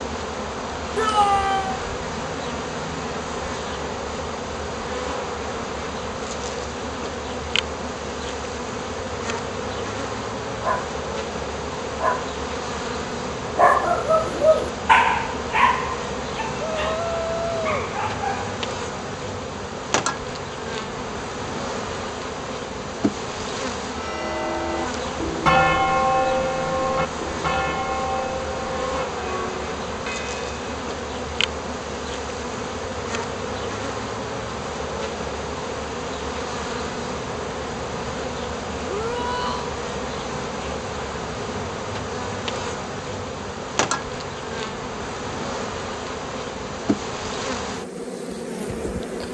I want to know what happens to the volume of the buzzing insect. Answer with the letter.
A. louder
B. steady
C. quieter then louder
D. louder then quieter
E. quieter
B.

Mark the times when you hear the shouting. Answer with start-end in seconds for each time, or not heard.
0.9-1.8, 16.6-17.7, 38.9-39.7.